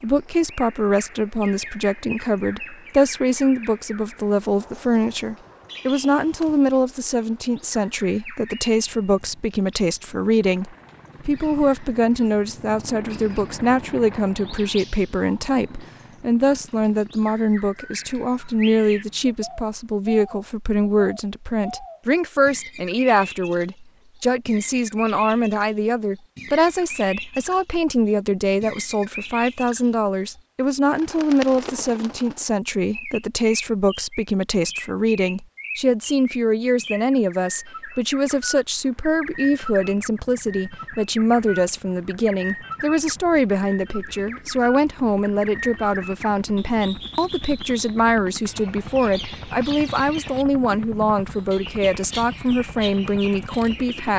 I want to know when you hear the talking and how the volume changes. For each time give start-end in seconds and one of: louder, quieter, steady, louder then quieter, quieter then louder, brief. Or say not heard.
0.0-54.1 steady.